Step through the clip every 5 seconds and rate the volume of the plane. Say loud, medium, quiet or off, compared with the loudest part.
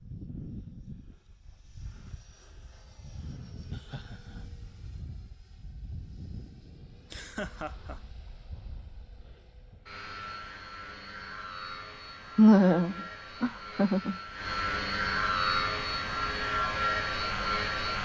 quiet, quiet, medium, loud.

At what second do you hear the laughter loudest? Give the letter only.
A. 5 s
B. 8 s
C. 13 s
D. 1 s
C.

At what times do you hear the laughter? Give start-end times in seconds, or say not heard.
3.7-4.5, 7.1-8.0, 12.3-14.2.